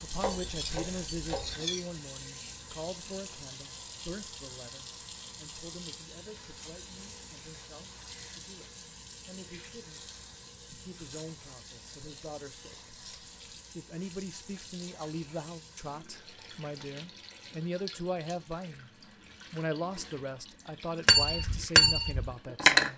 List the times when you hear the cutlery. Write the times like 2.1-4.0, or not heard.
0.1-1.8, 21.1-22.9.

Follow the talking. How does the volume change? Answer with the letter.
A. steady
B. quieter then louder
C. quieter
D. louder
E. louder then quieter
B.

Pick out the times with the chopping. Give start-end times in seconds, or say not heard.
0.1-1.6.